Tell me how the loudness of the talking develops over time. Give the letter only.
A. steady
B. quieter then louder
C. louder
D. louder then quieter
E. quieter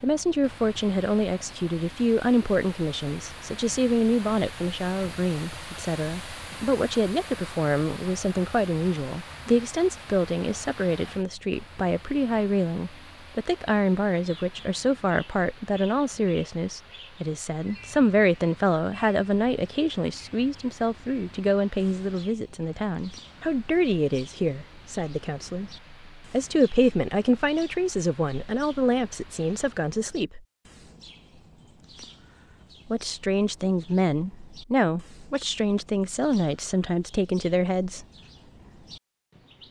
A.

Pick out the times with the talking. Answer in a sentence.
The talking can be heard from 0.0 to 30.4 s and from 32.9 to 38.0 s.